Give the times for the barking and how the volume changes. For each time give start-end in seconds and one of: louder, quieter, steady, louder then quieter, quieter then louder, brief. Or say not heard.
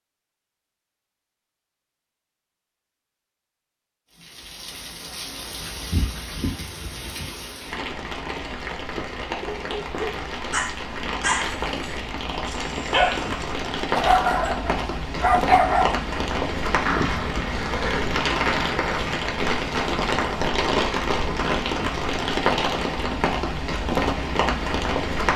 9.3-16.0 louder.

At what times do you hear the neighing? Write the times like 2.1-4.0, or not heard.
16.9-18.1.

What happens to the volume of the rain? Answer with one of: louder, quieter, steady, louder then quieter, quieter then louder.
louder.